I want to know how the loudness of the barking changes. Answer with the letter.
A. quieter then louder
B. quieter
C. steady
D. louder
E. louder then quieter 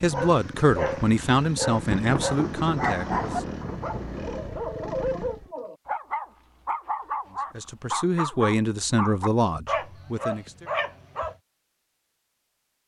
C.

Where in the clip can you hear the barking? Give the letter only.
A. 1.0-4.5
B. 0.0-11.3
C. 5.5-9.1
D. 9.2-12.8
B.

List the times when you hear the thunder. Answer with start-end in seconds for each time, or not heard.
1.0-4.5.